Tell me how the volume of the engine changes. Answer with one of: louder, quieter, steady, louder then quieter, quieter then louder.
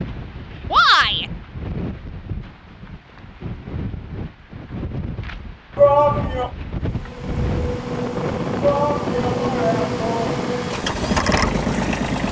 louder.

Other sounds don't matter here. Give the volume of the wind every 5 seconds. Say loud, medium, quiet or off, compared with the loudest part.
medium, loud, loud.